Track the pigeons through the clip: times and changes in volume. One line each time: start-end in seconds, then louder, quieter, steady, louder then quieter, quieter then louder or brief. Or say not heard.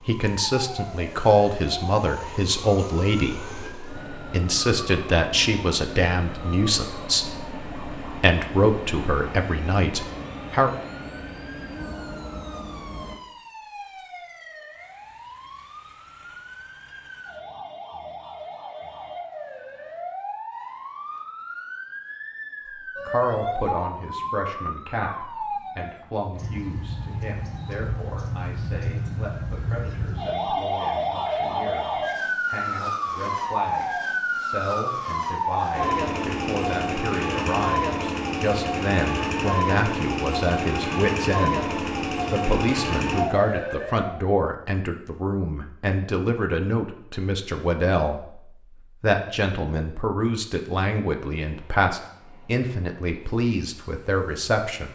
not heard.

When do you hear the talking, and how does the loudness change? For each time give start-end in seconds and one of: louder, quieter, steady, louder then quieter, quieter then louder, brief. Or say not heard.
0.1-10.8 steady
23.1-54.8 louder.